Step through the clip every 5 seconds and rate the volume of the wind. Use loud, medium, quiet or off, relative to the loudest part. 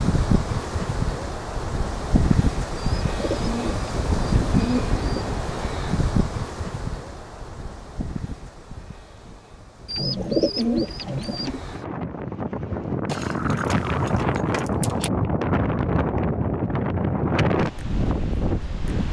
loud, medium, loud, loud.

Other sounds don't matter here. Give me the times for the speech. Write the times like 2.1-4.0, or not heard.
not heard.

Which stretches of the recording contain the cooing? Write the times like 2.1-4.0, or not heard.
2.8-5.4, 9.8-11.6.